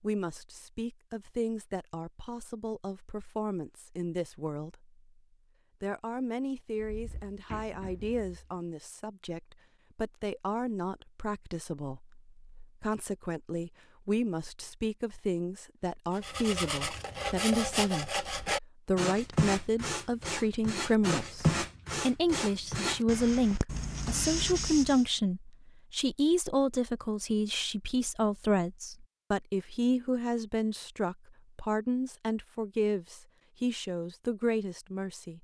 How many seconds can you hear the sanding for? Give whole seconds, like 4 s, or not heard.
9 s.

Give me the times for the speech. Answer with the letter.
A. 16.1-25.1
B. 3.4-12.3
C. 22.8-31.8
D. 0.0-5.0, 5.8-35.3
D.